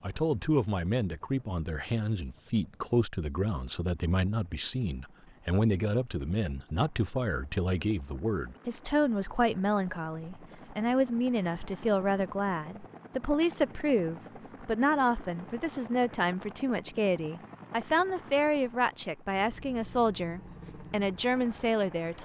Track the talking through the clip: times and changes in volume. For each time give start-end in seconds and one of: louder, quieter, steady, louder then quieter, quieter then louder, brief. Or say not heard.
0.0-22.2 steady.